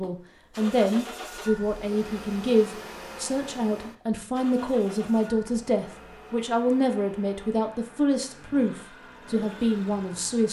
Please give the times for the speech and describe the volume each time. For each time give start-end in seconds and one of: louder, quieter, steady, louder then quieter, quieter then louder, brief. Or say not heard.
0.0-10.4 steady.